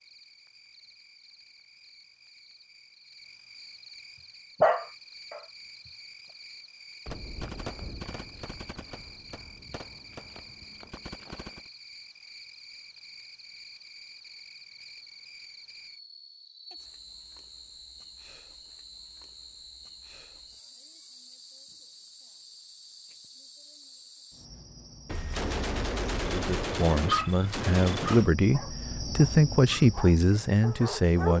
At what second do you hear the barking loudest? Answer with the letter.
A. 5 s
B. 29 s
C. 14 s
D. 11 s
A.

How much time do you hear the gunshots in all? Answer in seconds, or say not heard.
8 s.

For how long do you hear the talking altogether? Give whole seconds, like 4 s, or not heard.
5 s.